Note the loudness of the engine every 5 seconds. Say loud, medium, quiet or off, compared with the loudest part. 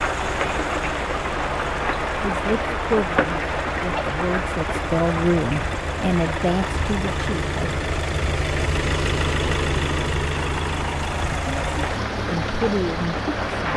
medium, loud, loud.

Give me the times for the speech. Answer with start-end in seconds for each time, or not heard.
2.2-7.8, 11.4-13.7.